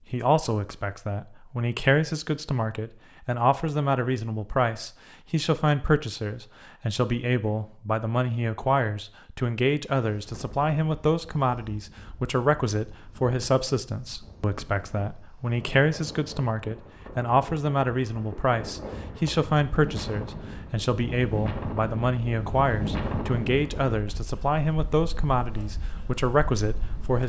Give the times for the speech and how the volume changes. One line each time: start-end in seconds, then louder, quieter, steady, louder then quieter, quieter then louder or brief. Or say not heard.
0.1-27.2 steady.